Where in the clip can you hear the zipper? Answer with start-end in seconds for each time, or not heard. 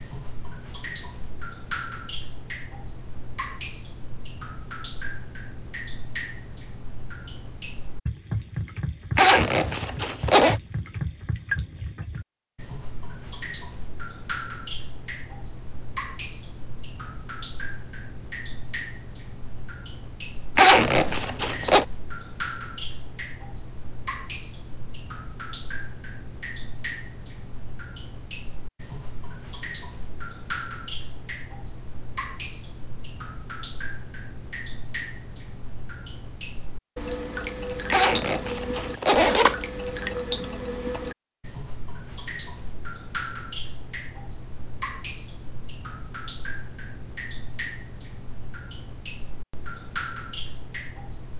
9.2-10.6, 20.6-21.9, 37.9-39.5.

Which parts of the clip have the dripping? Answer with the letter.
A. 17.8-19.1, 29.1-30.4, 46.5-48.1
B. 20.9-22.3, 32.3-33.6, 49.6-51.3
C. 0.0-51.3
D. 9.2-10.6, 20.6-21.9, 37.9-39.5
C.